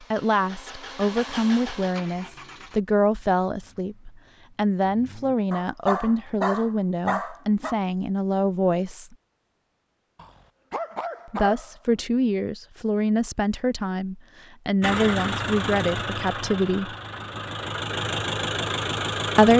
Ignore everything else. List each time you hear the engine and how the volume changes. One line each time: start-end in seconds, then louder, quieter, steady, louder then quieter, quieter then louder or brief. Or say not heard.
0.0-5.3 quieter
14.8-19.5 quieter then louder.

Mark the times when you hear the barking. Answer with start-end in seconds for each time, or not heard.
5.5-7.8, 10.2-12.0.